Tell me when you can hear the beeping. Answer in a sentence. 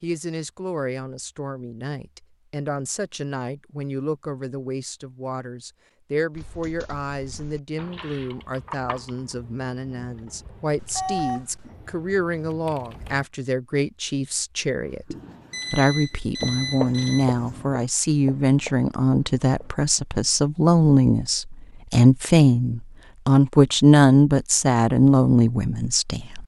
The beeping can be heard from 10.8 to 11.7 s and from 15.5 to 17.2 s.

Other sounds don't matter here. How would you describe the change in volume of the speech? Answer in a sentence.
The loudness of the speech goes up.